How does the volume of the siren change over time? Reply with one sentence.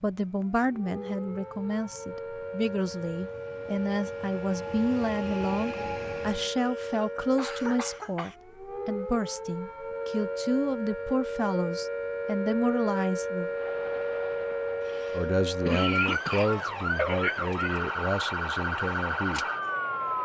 The loudness of the siren goes up.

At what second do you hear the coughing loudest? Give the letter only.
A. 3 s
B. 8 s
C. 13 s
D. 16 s
D.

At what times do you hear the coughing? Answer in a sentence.
The coughing can be heard from 6.7 to 8.3 s and from 14.8 to 16.6 s.